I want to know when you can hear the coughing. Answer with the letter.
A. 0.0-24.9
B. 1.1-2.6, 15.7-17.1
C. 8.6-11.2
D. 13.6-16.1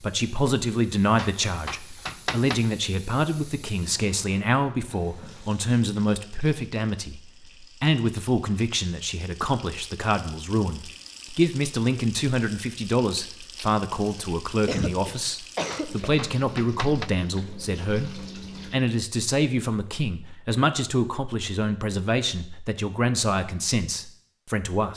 D.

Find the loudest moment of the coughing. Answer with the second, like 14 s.
15 s.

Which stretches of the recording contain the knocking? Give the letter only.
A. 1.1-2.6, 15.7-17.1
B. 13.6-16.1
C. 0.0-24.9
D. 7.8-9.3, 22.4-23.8
A.